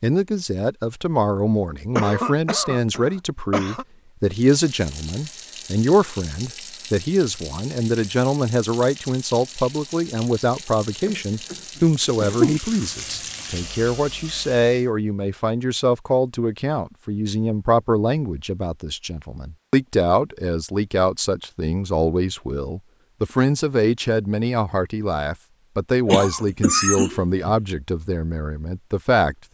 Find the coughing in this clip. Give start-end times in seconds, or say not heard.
1.9-3.9, 11.1-11.6, 12.2-12.6, 26.1-27.6.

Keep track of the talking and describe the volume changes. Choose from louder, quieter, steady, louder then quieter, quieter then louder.
steady.